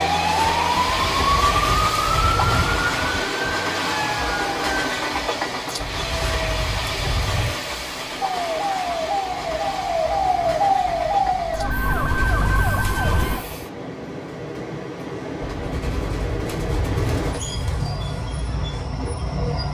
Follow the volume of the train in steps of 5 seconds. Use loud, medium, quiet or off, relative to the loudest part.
loud, loud, medium, loud.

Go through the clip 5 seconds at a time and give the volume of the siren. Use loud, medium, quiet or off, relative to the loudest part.
loud, medium, loud, off.